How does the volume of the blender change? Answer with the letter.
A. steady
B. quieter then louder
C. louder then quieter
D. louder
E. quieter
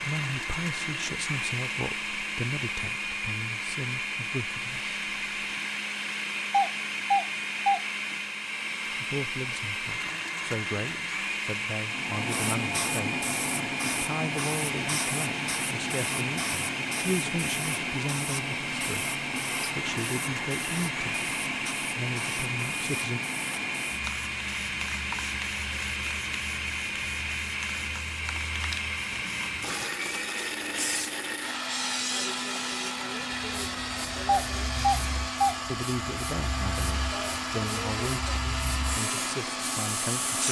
A.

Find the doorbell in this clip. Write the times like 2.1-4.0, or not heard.
6.5-7.8, 34.2-35.5.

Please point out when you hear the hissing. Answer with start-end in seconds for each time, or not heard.
11.8-40.4.